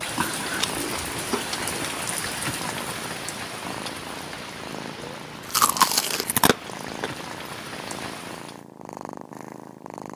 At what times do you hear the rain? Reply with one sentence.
You can hear the rain from 0.0 to 8.6 s.